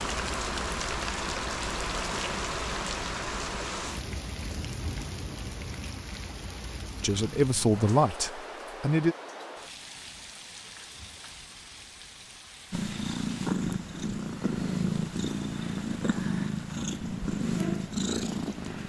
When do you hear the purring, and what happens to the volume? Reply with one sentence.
The purring can be heard from 12.7 to 18.8 s, at a steady volume.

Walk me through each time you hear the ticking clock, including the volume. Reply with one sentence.
You can't hear the ticking clock here.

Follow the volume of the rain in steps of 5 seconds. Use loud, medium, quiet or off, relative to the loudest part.
loud, medium, quiet, quiet.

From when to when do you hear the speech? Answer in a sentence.
You can hear the speech from 7.0 to 9.2 s.